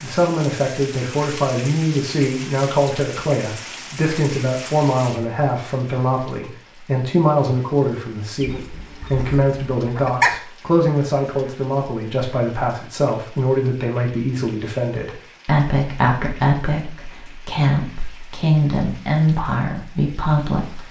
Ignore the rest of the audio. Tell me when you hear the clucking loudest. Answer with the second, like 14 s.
10 s.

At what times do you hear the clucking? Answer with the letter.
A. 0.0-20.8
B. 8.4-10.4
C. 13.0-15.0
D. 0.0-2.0
B.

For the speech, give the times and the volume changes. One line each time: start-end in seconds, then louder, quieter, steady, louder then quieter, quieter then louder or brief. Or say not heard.
0.0-20.8 steady.